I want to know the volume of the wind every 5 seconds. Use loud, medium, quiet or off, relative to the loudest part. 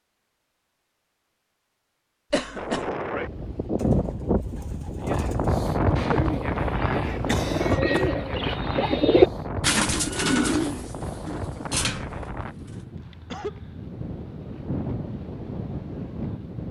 loud, loud, medium, medium.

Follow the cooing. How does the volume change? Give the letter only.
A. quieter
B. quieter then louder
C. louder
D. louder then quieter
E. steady
D.